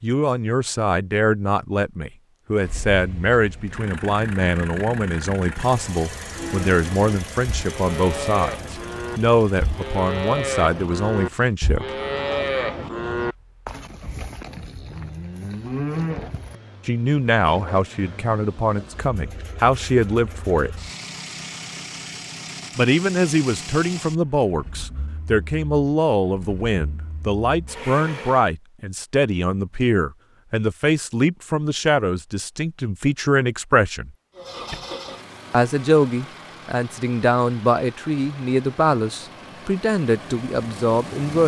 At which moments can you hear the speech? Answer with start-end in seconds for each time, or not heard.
0.0-11.8, 16.9-20.7, 22.8-34.1, 35.5-41.4.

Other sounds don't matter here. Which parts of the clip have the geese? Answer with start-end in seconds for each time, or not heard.
not heard.